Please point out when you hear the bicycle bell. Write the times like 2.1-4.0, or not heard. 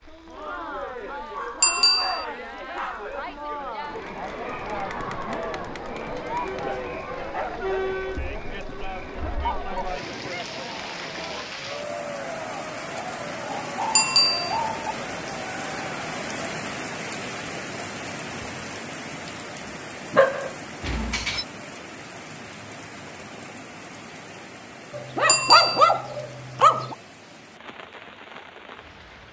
1.6-2.2, 13.9-14.6, 25.2-25.9.